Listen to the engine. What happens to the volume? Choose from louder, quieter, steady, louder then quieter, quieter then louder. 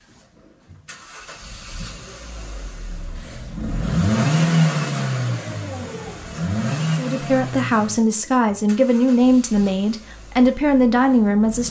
louder then quieter.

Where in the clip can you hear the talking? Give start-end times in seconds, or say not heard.
7.0-11.6.